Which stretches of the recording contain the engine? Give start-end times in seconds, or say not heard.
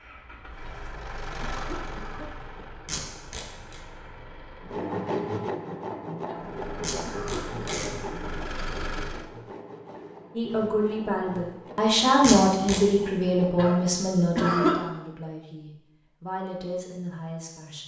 0.0-4.8, 6.3-9.3.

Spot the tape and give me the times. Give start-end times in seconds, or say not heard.
2.9-3.8, 6.8-7.9, 12.2-12.8.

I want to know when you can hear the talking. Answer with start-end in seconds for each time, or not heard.
10.3-17.8.